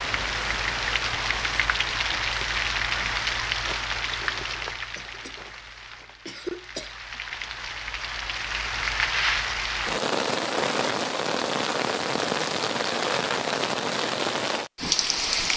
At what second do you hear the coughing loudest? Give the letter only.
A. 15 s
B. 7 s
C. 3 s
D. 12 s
B.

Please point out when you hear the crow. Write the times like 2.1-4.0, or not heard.
not heard.